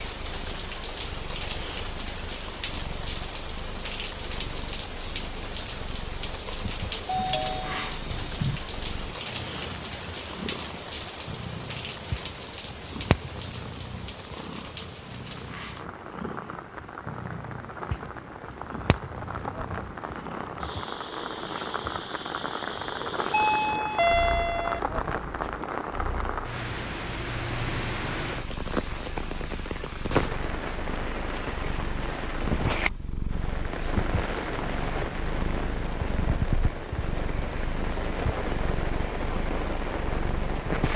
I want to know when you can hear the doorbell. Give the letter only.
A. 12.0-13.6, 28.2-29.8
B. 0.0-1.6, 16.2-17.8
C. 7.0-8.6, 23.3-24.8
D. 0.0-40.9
C.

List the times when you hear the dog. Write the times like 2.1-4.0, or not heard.
not heard.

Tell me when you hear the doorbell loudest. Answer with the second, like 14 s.
24 s.